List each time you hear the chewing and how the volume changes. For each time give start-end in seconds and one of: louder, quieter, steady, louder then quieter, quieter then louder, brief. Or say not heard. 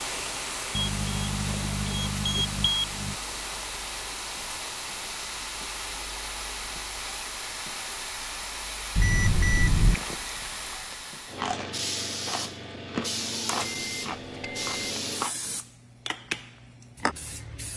9.8-15.6 louder then quieter.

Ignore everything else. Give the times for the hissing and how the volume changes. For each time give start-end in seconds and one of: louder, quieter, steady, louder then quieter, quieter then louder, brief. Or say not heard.
0.0-17.7 steady.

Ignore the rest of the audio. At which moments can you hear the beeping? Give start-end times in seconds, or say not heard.
0.8-3.1, 8.9-9.9, 13.4-14.7.